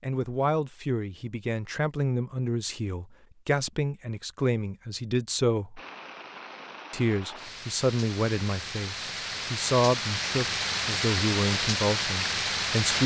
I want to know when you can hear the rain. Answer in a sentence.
You can hear the rain from 5.8 to 13.0 s.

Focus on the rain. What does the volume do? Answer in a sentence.
The loudness of the rain goes up.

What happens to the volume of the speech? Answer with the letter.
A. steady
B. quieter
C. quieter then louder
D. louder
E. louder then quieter
A.